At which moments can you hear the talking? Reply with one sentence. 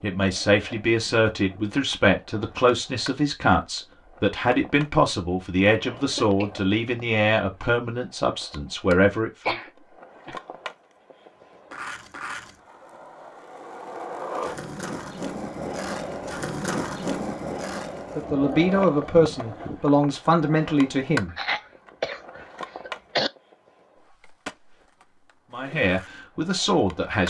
The talking can be heard from 0.0 to 9.6 s, from 18.1 to 21.4 s and from 25.5 to 27.2 s.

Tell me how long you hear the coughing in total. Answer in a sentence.
You can hear the coughing for 4 seconds altogether.